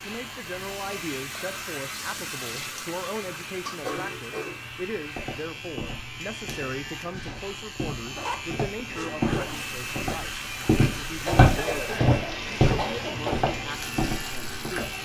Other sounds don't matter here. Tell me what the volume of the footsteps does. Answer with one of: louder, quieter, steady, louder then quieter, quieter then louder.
louder then quieter.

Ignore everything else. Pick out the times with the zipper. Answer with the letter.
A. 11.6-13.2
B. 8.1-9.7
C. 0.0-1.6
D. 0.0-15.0
B.